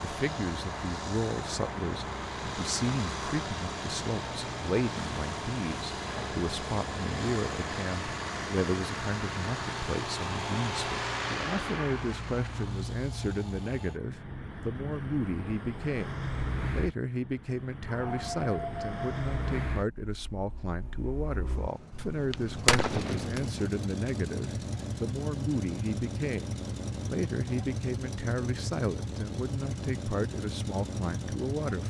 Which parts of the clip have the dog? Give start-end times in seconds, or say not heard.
17.9-19.6.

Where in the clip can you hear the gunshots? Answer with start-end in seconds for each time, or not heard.
21.9-23.5.